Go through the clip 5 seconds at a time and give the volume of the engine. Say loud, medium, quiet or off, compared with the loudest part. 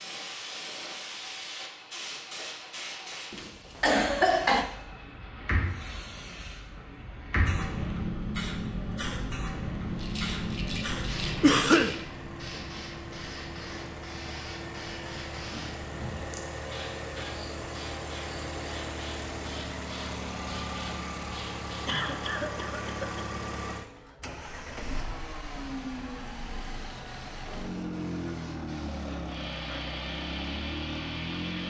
quiet, quiet, medium, loud, loud, loud, loud.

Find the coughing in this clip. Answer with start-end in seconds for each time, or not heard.
3.3-4.7, 11.4-11.9, 21.9-23.3.